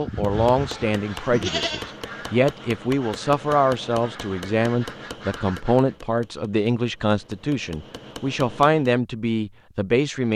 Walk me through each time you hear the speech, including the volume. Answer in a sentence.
You can hear the speech from 0.0 to 10.3 s, at a steady volume.